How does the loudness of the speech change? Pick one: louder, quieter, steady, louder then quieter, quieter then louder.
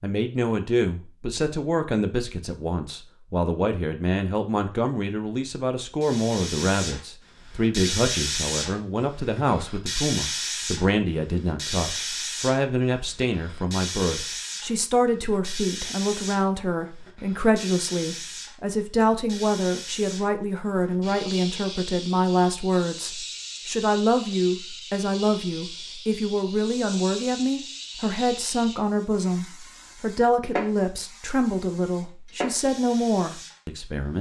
steady.